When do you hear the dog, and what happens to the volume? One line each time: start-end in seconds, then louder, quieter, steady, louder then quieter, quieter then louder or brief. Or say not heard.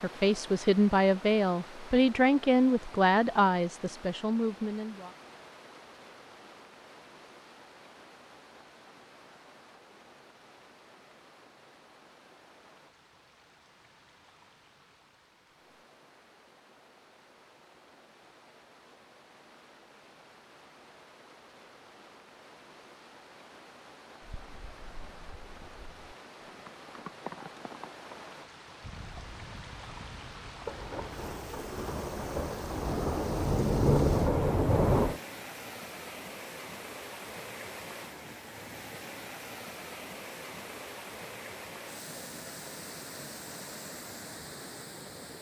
not heard.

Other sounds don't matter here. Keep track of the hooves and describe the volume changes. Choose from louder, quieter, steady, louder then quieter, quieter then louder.
louder then quieter.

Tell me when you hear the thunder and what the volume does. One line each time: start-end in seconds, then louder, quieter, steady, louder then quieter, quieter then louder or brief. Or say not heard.
30.6-35.2 louder.